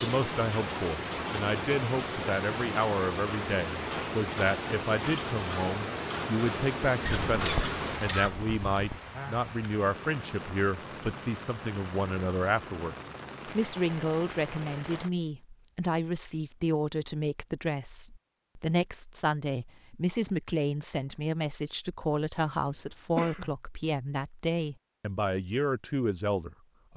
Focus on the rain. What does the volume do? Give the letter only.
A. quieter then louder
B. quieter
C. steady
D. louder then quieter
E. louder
B.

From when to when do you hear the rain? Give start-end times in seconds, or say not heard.
0.0-15.1.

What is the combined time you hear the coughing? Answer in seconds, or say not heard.
2 s.